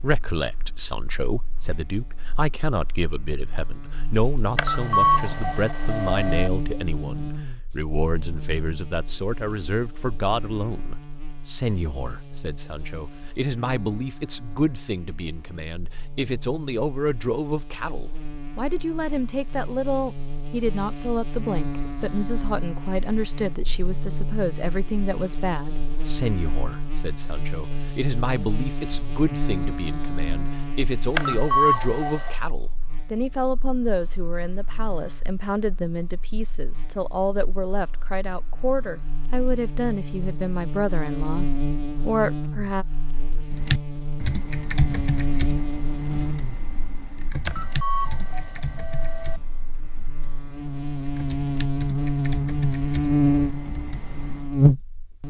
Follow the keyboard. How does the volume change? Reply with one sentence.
The volume of the keyboard goes down.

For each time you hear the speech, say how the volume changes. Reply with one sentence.
The speech can be heard from 0.0 to 42.9 s, at a steady volume.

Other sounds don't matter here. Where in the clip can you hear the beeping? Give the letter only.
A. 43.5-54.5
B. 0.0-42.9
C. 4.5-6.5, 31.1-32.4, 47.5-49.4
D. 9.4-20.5
C.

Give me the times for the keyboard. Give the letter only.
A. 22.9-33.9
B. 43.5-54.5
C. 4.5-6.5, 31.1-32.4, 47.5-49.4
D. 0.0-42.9
B.